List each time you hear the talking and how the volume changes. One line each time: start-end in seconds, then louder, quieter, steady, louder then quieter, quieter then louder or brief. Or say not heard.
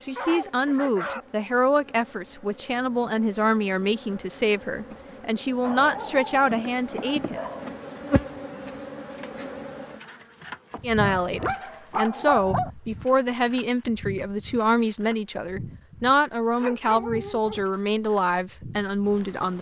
0.1-7.4 steady
10.8-19.5 steady.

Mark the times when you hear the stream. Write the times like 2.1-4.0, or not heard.
not heard.